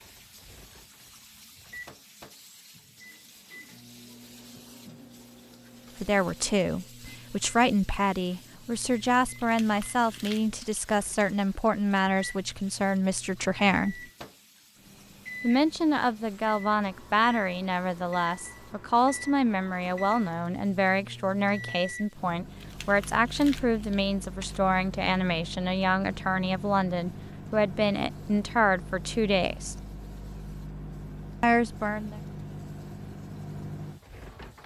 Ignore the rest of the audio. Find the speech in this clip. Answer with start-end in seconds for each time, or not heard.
6.0-14.0, 15.4-29.8, 31.4-32.2.